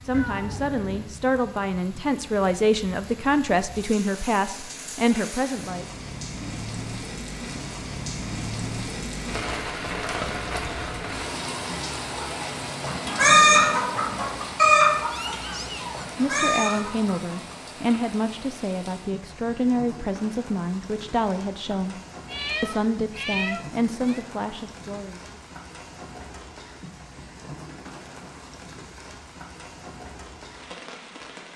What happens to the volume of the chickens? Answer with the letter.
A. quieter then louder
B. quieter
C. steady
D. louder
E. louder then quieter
A.